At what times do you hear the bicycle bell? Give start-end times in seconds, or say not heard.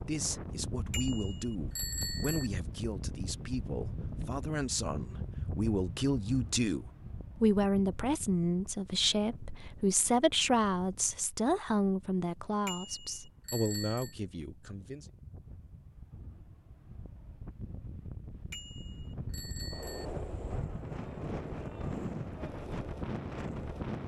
0.9-2.5, 12.7-14.2, 18.5-20.1.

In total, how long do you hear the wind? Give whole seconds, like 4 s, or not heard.
24 s.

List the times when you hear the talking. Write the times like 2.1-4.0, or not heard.
0.0-15.1.